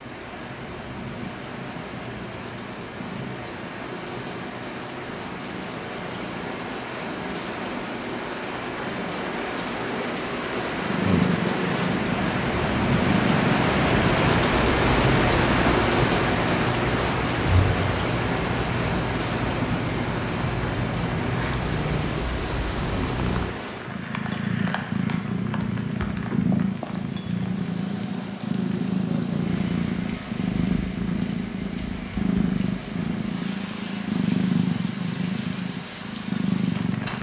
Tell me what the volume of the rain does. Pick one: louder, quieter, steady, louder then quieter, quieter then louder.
louder then quieter.